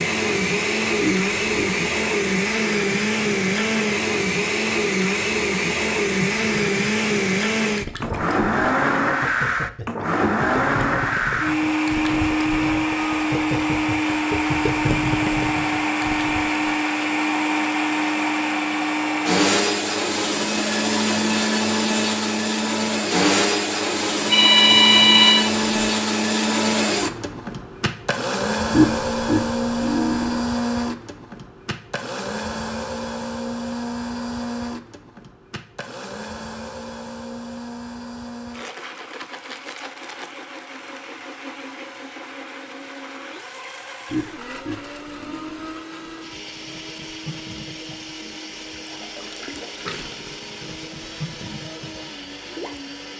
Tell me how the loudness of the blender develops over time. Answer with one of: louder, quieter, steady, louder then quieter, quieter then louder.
quieter.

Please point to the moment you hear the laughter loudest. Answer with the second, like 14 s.
29 s.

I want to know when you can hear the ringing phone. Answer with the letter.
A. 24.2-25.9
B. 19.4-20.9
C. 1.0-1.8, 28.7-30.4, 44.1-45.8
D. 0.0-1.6
A.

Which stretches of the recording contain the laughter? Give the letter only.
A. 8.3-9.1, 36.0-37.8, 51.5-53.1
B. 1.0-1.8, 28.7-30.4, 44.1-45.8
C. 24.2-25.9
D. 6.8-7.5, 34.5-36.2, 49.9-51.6
B.